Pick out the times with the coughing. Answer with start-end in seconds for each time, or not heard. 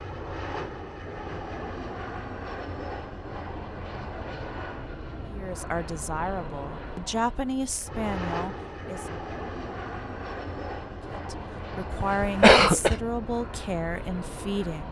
11.9-12.9.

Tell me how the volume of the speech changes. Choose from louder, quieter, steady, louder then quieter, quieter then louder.
steady.